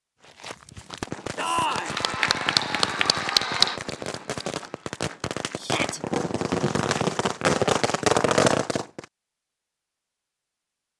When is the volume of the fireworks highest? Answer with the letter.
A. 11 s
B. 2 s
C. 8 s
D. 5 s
C.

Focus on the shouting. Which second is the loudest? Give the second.
2 s.